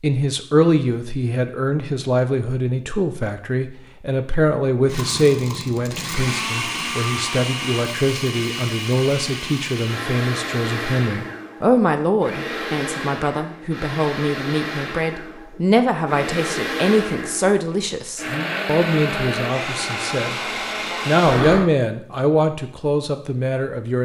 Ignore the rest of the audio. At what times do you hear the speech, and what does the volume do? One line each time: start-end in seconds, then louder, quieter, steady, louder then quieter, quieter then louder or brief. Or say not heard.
0.0-20.4 steady
21.1-24.0 brief.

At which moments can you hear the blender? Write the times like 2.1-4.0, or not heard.
4.8-21.7.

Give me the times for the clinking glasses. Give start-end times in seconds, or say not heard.
not heard.